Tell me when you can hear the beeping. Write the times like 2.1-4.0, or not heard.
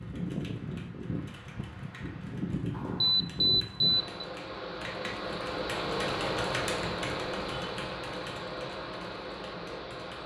2.8-4.2.